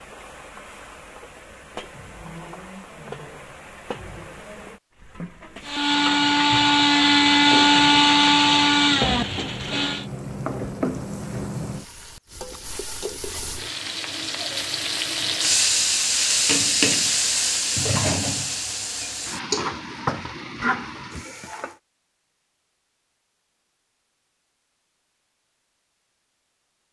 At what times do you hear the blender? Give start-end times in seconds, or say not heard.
5.6-10.1.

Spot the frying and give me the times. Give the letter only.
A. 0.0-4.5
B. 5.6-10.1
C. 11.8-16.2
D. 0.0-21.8
D.